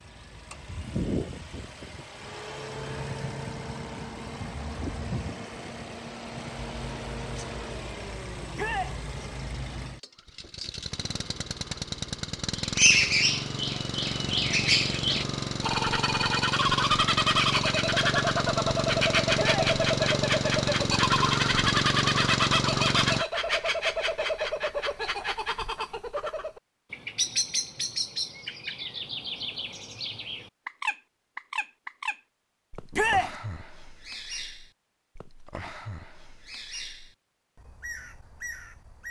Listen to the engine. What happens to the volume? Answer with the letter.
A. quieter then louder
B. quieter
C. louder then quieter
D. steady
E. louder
E.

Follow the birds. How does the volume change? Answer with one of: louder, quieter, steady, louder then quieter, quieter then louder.
quieter.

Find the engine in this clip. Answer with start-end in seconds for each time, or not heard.
0.0-23.2.